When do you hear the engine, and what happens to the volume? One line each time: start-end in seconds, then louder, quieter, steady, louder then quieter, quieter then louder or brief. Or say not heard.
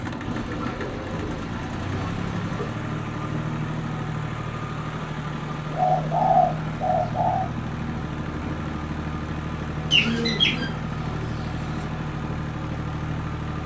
0.0-13.6 steady.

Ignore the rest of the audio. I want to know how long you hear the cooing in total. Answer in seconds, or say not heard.
6 s.